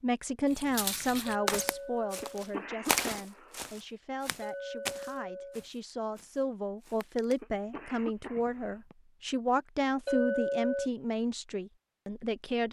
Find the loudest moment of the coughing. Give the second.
3 s.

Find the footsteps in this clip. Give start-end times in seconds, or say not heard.
0.5-8.9.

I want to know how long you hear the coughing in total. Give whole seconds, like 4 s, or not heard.
3 s.